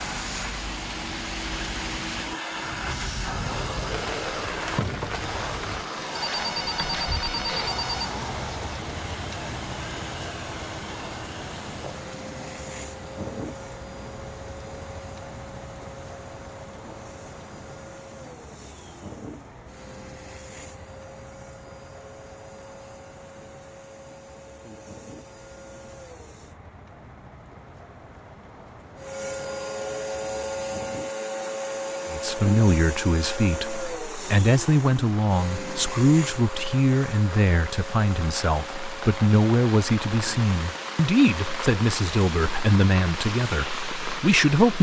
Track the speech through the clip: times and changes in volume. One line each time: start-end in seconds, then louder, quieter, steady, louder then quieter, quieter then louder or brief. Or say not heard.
32.1-44.7 steady.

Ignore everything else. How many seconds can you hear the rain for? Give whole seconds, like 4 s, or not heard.
45 s.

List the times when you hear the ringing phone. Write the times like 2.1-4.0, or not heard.
6.2-8.2.